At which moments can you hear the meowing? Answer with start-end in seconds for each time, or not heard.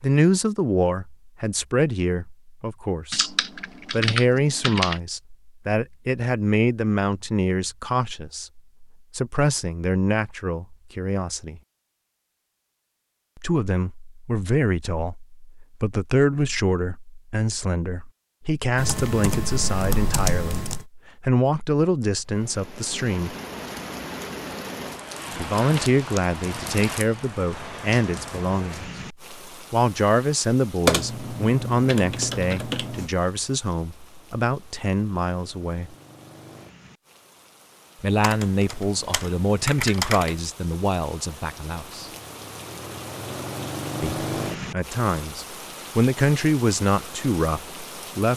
not heard.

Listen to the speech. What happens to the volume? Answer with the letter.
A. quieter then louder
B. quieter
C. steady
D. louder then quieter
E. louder
C.